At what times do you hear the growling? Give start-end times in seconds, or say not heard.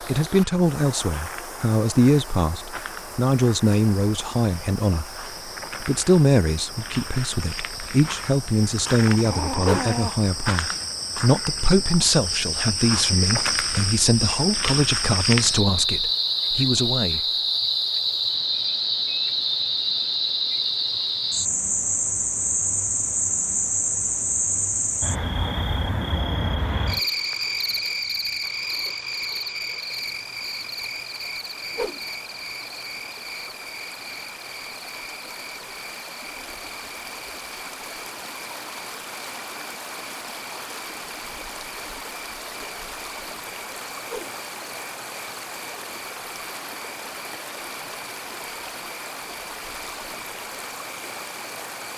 9.1-10.2.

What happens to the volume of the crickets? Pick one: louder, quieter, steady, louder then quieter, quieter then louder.
louder then quieter.